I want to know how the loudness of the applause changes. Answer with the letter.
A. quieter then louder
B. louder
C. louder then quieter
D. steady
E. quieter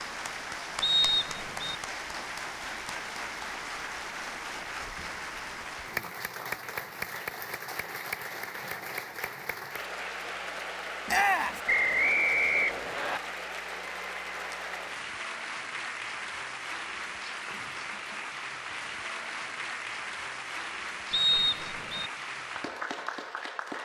D.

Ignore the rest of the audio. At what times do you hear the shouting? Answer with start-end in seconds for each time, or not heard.
11.1-11.6.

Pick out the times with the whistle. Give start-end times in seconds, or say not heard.
0.8-1.8, 11.7-13.2, 21.1-22.1.